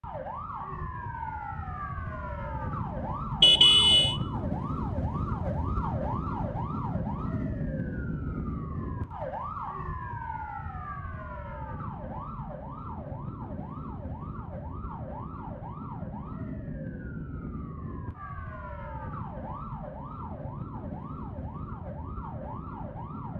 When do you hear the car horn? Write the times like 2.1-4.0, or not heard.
3.4-4.2.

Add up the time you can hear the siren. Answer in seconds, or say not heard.
23 s.